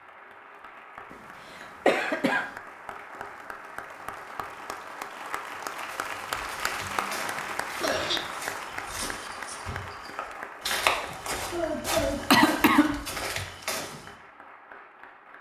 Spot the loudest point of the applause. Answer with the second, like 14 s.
7 s.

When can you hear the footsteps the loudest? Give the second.
11 s.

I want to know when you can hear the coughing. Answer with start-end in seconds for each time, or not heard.
1.9-2.5, 6.8-8.2, 11.1-13.1.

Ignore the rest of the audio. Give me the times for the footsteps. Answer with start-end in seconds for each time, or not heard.
5.8-14.2.